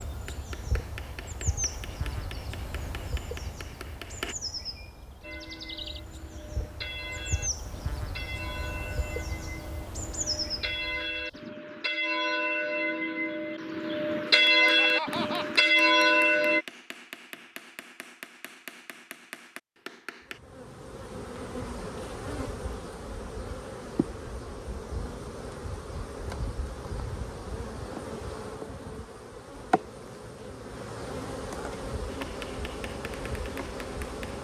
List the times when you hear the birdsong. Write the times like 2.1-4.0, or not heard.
not heard.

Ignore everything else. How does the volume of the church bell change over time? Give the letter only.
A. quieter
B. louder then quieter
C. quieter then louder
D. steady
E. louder
E.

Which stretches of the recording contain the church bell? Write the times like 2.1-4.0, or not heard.
5.2-16.6.